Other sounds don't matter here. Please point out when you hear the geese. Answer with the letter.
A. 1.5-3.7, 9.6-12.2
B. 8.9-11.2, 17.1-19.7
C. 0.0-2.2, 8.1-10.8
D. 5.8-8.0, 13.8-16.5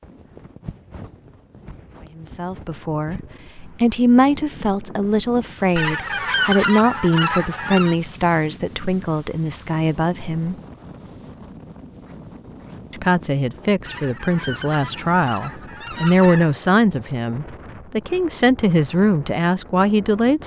D.